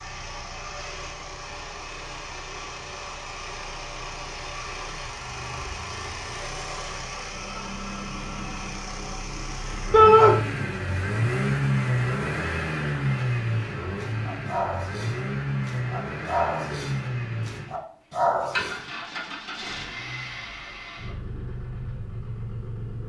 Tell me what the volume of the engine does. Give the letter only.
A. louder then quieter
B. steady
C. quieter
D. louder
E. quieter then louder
A.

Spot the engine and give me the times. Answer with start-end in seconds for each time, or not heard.
0.0-23.0.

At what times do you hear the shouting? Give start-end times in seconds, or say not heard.
9.9-10.3.